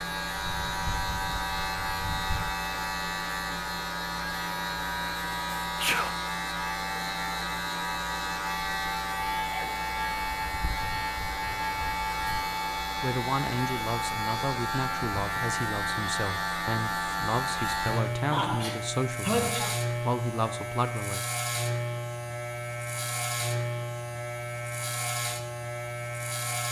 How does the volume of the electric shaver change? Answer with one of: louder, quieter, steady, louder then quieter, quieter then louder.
steady.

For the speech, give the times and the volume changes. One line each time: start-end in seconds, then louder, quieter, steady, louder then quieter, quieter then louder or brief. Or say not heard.
13.0-21.2 steady.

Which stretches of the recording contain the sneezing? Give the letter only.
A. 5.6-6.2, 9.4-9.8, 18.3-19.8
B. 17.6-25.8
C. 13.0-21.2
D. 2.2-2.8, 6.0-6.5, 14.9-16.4
A.